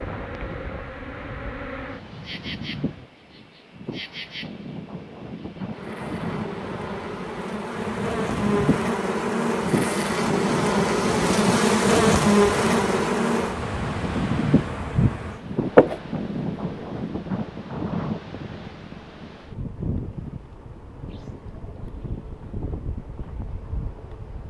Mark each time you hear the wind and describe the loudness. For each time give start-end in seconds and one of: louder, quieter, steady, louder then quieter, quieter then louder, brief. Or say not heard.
0.0-24.4 louder then quieter.